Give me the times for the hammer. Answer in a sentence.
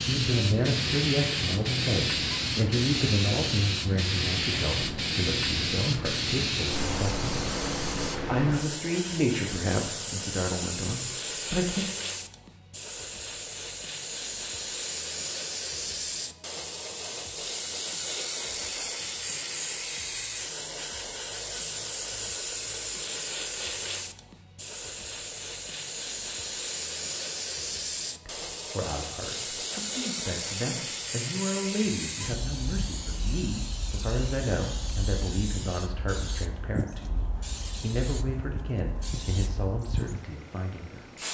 The hammer can't be heard in this clip.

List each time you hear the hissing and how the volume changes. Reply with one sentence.
The hissing can be heard from 0.0 to 41.2 s, getting quieter.